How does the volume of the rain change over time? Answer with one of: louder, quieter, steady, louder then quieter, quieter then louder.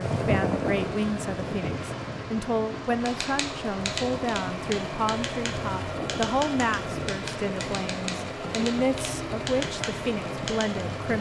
quieter.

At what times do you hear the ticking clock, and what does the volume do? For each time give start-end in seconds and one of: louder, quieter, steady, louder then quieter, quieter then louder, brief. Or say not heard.
not heard.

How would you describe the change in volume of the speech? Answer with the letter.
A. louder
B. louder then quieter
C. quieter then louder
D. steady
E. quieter
D.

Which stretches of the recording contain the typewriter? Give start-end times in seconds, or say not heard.
3.0-10.8.